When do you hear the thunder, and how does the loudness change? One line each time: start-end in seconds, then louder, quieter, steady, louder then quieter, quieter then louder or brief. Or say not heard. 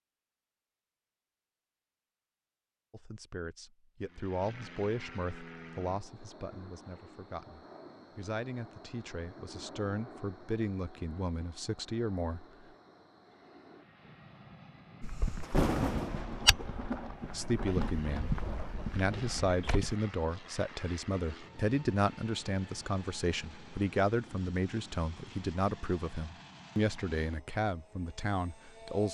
15.4-19.7 quieter.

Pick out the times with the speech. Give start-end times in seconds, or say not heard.
2.9-12.4, 17.3-18.4, 18.9-29.0.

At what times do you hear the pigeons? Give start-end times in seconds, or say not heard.
not heard.